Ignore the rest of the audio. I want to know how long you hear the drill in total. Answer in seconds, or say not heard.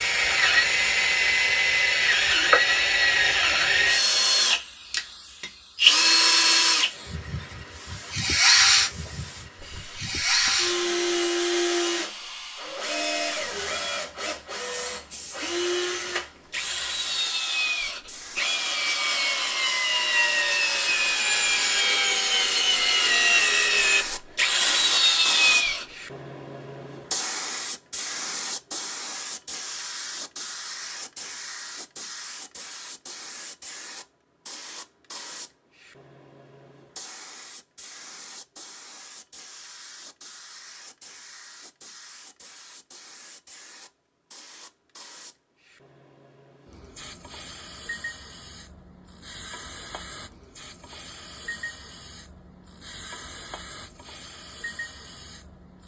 26 s.